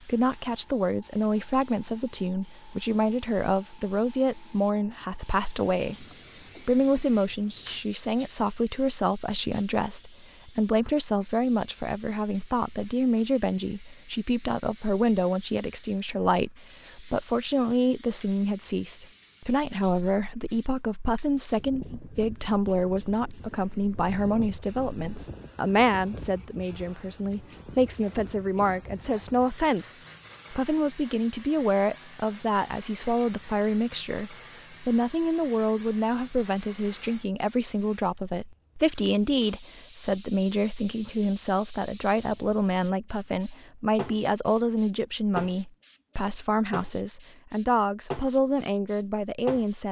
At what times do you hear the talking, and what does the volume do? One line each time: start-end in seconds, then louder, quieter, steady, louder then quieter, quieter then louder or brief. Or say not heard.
0.1-49.8 steady.